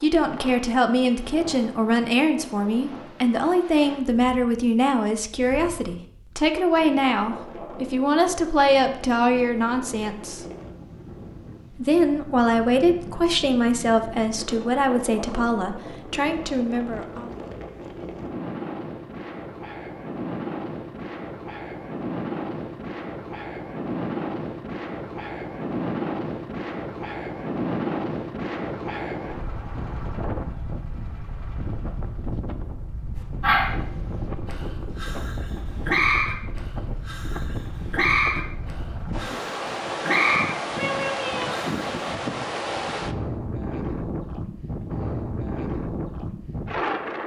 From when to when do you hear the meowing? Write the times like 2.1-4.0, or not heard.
40.8-41.6.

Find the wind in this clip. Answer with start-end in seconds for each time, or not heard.
0.0-47.2.